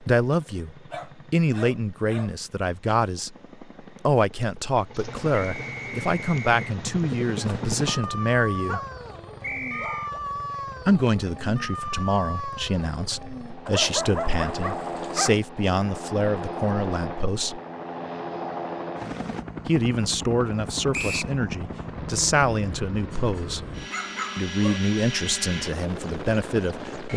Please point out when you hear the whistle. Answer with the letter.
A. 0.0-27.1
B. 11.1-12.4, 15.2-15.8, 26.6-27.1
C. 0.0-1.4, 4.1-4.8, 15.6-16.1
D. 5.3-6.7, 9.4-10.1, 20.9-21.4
D.